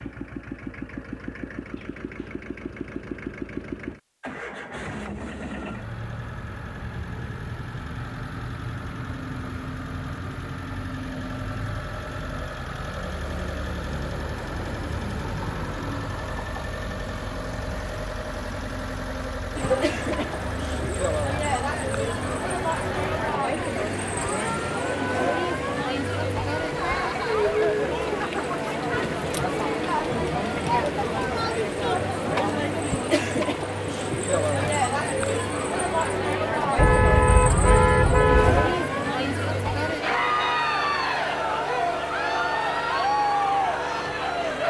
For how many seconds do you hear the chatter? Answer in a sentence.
The chatter can be heard for 25 seconds in total.